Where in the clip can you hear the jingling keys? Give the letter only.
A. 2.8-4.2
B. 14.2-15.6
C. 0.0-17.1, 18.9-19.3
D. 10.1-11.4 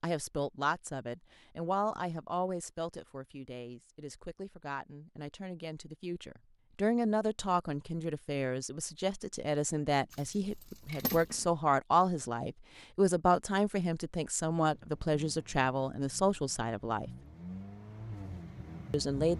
D.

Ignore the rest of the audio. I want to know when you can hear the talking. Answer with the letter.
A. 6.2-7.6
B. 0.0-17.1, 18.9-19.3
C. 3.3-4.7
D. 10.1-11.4
B.